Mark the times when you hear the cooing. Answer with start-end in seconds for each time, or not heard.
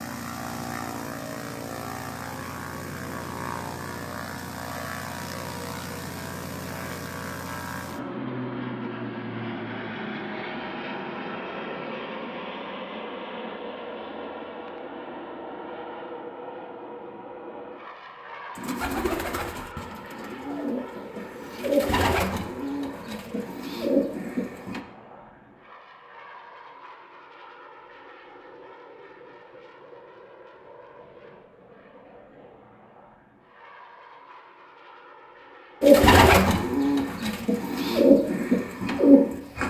18.6-24.8, 35.8-39.6.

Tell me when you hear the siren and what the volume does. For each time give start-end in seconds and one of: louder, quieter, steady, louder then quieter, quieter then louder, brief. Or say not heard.
not heard.